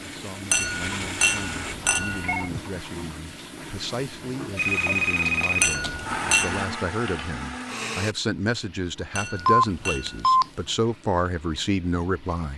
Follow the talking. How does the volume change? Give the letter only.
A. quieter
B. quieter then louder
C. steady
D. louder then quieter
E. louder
E.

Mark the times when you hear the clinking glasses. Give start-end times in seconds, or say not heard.
0.5-2.6, 5.6-6.8, 9.2-10.3.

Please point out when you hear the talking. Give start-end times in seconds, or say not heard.
0.1-12.5.